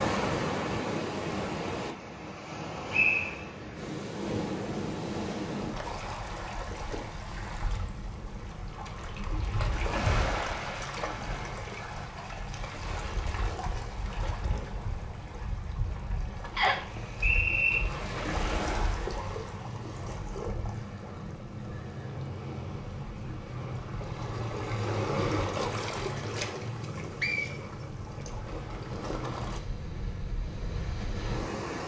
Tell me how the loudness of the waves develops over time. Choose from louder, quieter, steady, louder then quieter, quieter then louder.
steady.